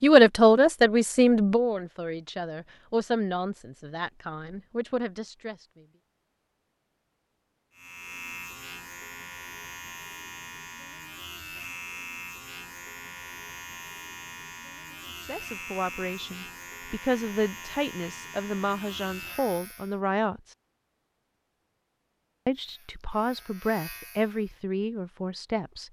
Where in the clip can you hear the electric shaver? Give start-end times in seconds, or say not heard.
7.7-20.0, 22.6-24.6.